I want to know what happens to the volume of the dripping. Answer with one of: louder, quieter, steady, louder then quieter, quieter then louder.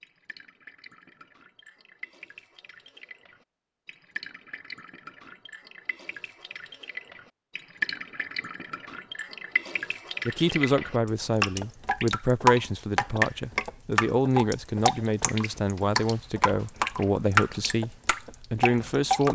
louder.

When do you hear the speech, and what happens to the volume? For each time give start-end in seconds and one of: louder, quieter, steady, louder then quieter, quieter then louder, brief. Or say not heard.
10.2-19.3 steady.